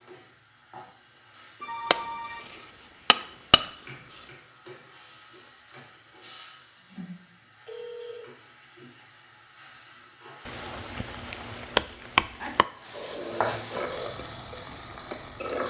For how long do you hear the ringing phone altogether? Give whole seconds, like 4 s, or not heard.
4 s.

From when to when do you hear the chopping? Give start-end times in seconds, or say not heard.
1.9-4.3, 10.4-12.7.